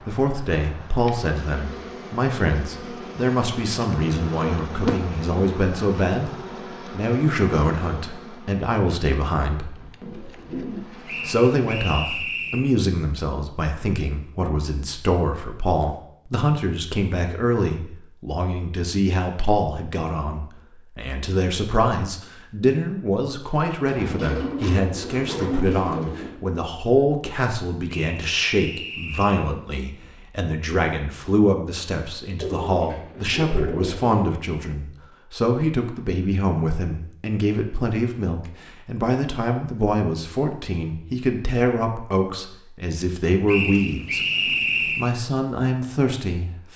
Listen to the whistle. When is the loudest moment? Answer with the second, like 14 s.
45 s.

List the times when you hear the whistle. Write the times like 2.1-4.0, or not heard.
11.1-12.7, 27.9-29.6, 43.5-45.1.